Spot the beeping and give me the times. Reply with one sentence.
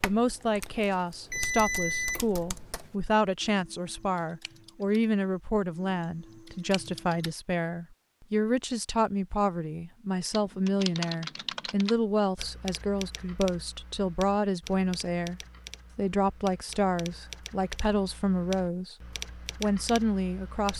The beeping can be heard from 1.3 to 2.8 s.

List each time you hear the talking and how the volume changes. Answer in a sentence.
The talking can be heard from 0.0 to 18.9 s, at a steady volume; and briefly from 19.6 to 20.7 s.